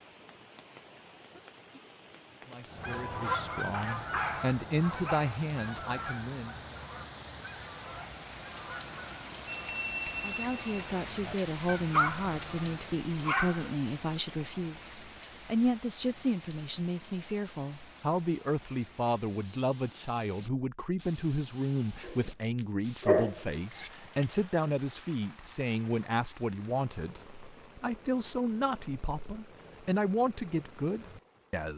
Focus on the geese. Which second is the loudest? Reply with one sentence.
The volume of the geese peaks at 3 seconds.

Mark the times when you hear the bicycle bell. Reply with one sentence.
You can hear the bicycle bell from 9.4 to 10.9 s.